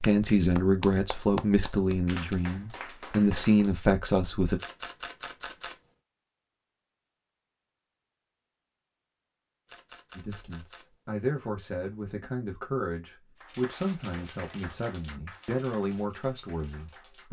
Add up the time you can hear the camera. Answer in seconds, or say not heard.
3 s.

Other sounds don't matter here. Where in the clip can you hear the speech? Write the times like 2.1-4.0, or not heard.
0.0-4.6, 10.2-17.2.